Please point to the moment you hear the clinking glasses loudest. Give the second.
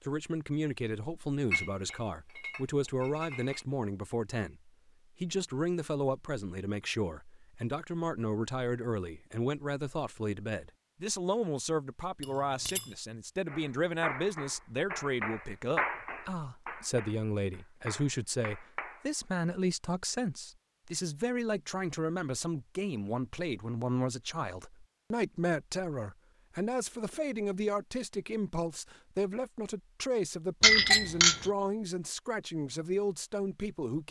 31 s.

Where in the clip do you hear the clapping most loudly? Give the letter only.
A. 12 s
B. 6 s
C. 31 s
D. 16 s
D.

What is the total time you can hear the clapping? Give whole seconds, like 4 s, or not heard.
6 s.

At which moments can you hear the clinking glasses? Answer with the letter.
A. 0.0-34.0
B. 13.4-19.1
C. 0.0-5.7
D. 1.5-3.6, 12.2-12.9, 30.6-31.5
D.